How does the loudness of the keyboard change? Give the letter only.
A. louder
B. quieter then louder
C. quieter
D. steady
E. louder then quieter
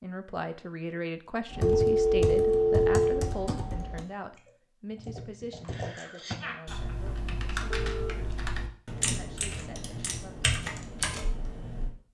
B.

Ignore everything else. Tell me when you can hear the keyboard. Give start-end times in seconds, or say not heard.
1.5-11.9.